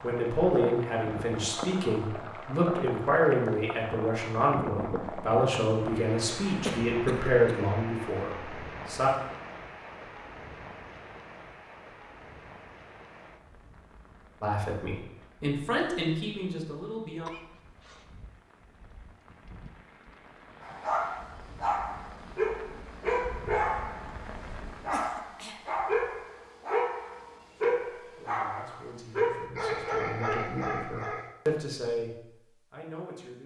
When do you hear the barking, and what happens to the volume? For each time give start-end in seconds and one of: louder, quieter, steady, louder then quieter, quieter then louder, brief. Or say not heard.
20.6-31.2 steady.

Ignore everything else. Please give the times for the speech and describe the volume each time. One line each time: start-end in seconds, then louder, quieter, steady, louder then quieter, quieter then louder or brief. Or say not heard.
0.0-9.1 steady
14.4-17.3 brief
28.0-33.4 louder then quieter.